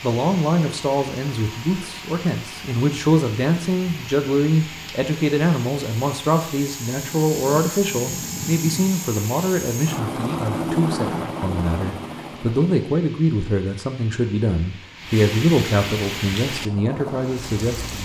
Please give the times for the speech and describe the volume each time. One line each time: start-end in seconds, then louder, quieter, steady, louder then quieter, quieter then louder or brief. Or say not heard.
0.0-17.9 steady.